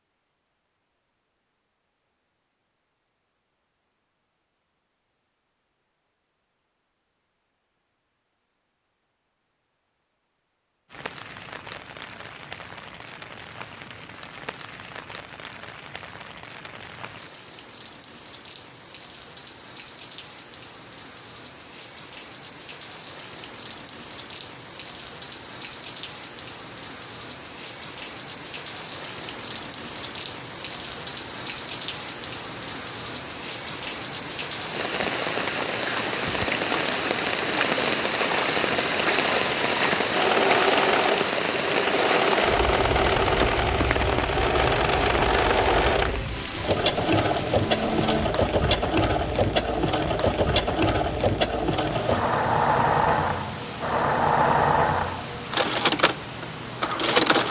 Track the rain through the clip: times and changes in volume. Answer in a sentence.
The rain can be heard from 10.9 to 57.4 s, getting louder then quieter.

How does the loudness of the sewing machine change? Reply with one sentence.
The loudness of the sewing machine stays about the same.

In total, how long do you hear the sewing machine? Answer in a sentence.
The sewing machine can be heard for 17 seconds in total.